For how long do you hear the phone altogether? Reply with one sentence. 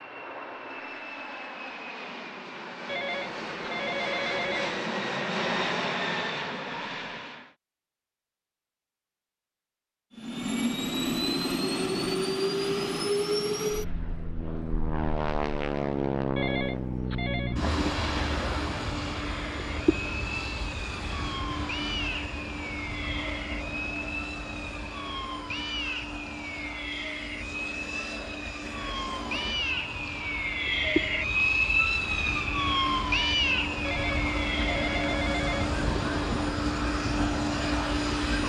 The phone can be heard for 5 seconds in total.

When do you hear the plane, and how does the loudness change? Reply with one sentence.
The plane can be heard from 0.0 to 7.5 s, getting louder; and from 10.1 to 38.4 s, getting quieter then louder.